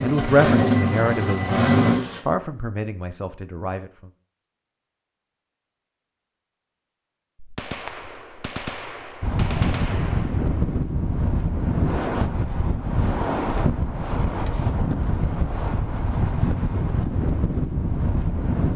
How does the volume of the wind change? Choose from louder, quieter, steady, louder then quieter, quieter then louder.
steady.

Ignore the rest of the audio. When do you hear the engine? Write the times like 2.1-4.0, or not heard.
0.0-2.2.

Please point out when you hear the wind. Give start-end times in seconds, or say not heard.
9.2-18.7.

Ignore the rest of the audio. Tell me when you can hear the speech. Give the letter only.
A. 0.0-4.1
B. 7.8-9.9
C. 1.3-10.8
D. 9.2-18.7
A.